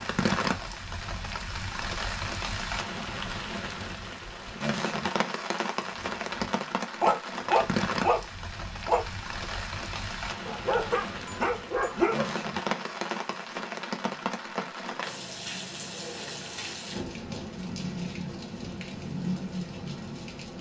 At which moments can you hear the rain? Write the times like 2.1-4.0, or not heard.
0.0-20.5.